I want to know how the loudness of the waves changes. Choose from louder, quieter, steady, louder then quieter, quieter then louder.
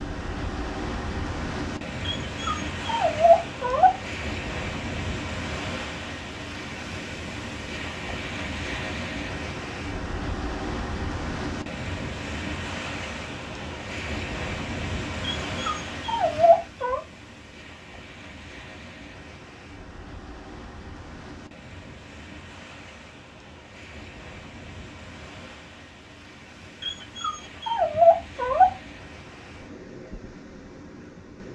quieter.